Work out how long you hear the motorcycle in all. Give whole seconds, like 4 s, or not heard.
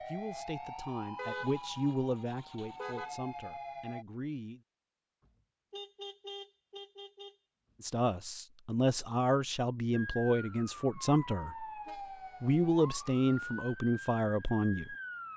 not heard.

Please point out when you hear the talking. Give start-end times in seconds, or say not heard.
0.0-4.6, 7.8-11.7, 12.4-14.9.